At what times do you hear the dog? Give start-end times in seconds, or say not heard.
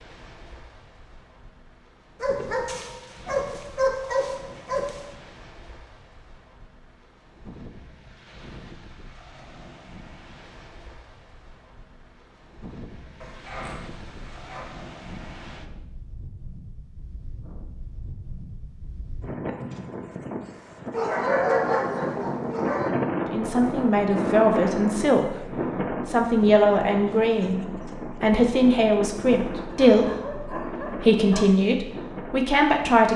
2.2-5.1, 13.2-14.8, 20.9-22.9, 29.6-31.6.